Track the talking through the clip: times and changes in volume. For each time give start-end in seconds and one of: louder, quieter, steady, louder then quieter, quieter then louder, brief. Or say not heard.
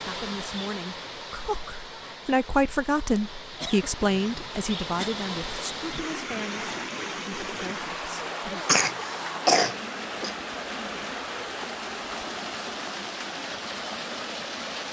0.1-8.7 louder then quieter.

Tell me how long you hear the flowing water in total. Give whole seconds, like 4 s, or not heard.
15 s.